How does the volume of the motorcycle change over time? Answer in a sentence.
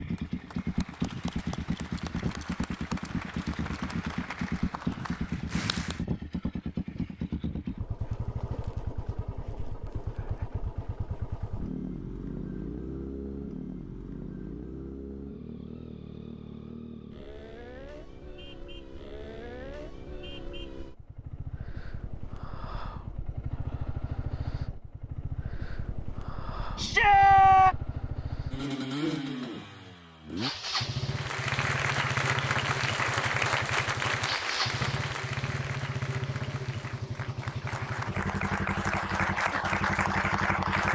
The volume of the motorcycle goes down, then up.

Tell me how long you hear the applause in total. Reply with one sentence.
The applause can be heard for 16 seconds in total.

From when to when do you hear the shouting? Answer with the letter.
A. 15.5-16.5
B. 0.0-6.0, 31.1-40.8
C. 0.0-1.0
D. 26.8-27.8
D.